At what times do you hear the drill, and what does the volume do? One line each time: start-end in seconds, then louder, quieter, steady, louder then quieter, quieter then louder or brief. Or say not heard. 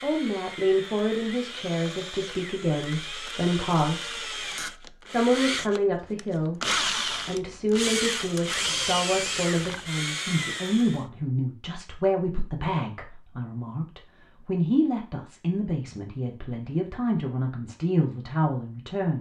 0.0-11.1 louder.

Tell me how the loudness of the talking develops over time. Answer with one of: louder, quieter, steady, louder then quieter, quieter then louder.
steady.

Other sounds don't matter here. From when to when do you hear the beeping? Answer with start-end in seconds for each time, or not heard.
not heard.